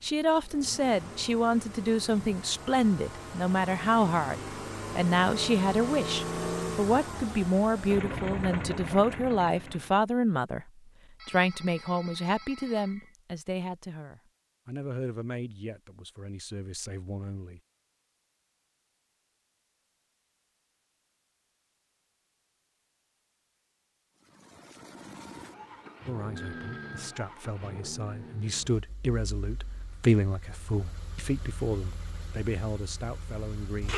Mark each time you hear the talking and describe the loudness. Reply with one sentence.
The talking can be heard from 0.0 to 10.7 s, at a steady volume; from 11.2 to 17.6 s, getting quieter; and from 26.1 to 33.9 s, getting louder then quieter.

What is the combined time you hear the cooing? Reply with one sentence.
The cooing can't be heard in this clip.